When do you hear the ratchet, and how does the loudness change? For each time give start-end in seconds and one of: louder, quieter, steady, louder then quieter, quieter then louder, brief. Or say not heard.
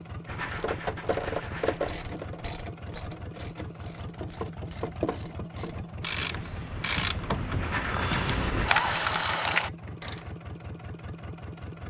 0.5-10.2 quieter then louder.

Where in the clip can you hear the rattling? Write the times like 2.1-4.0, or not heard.
0.2-2.0, 7.6-9.1.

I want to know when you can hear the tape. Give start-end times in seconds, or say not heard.
not heard.